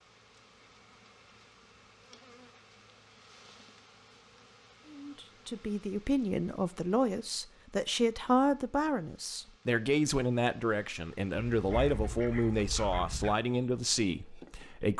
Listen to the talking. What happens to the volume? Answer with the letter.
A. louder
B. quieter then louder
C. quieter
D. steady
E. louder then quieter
D.